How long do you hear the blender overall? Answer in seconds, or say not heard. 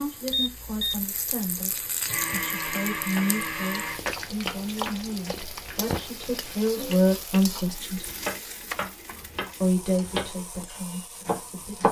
2 s.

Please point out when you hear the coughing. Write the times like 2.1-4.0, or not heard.
not heard.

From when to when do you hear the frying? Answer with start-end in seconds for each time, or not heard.
0.0-11.8.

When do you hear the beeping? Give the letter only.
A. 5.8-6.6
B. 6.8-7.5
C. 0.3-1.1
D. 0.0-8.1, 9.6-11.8
C.